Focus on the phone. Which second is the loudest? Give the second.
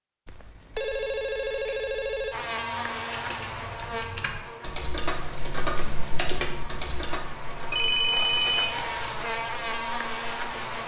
8 s.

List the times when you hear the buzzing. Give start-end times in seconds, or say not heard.
2.3-10.8.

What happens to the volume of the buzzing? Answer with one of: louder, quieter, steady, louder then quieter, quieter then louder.
quieter then louder.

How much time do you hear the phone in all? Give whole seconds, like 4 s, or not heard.
3 s.